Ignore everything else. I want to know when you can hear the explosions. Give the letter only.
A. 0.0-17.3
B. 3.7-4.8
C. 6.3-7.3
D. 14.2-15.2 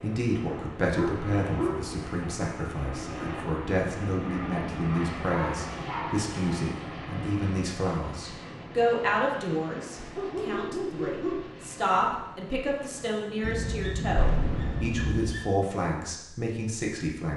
D.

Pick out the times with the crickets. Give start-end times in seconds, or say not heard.
not heard.